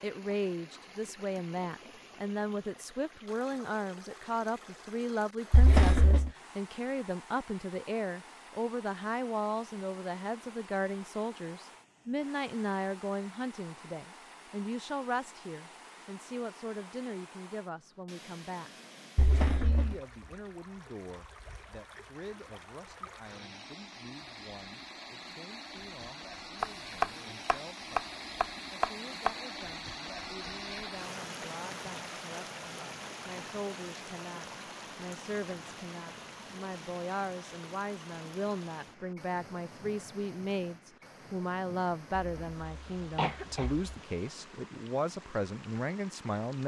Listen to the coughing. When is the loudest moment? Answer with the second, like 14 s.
6 s.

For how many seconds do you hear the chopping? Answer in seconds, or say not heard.
3 s.